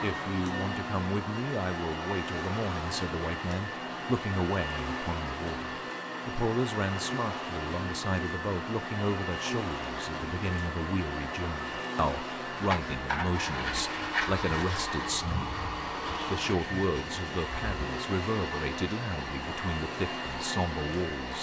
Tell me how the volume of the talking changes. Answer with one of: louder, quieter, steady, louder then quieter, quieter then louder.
steady.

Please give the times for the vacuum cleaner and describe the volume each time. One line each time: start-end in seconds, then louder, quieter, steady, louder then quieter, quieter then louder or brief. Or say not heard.
0.0-21.3 steady.